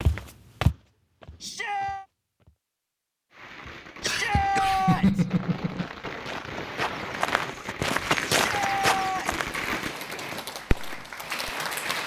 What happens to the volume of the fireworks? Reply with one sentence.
The volume of the fireworks goes up.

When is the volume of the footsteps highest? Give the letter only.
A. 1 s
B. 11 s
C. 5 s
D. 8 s
D.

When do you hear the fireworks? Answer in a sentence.
The fireworks can be heard from 3.3 to 11.5 s.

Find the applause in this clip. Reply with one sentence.
The applause can be heard from 9.5 to 12.0 s.